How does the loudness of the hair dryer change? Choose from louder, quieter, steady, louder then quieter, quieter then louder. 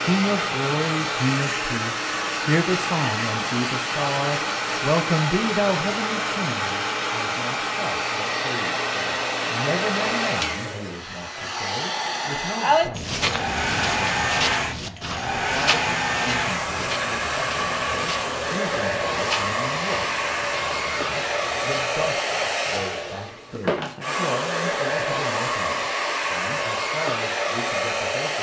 steady.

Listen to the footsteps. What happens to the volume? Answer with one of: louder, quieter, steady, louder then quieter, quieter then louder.
quieter.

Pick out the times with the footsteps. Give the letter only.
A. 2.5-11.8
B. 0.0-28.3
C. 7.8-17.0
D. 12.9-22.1
D.